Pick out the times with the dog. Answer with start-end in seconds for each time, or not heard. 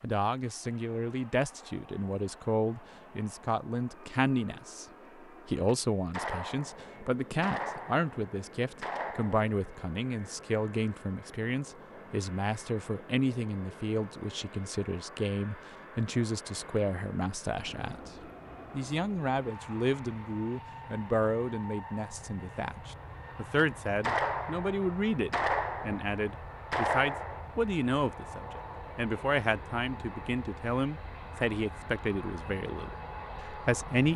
not heard.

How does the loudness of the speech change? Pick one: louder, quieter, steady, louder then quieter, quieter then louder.
steady.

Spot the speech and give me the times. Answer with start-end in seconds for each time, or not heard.
0.0-4.8, 5.5-18.1, 18.7-34.1.